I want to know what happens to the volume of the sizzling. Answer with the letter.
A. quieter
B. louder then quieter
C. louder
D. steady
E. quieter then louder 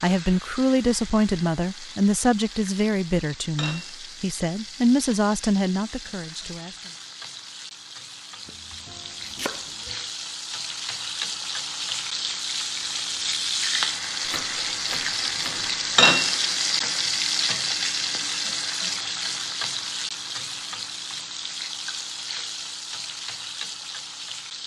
B.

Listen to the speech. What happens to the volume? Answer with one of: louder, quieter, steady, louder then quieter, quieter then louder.
steady.